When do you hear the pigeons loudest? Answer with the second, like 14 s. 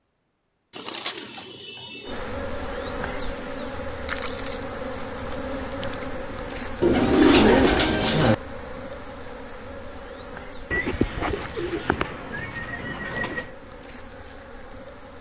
7 s.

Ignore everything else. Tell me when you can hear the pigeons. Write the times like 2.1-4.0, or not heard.
0.8-2.2, 6.8-8.3, 10.7-13.4.